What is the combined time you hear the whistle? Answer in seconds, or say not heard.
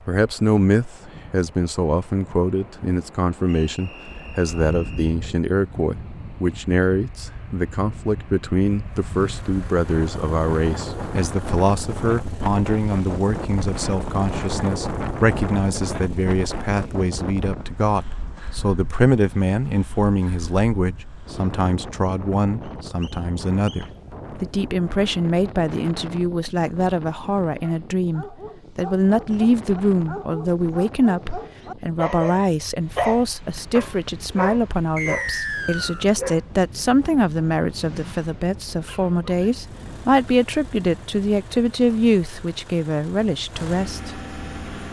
4 s.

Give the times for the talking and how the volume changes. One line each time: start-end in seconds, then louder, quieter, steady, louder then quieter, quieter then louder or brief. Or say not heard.
0.1-44.1 steady.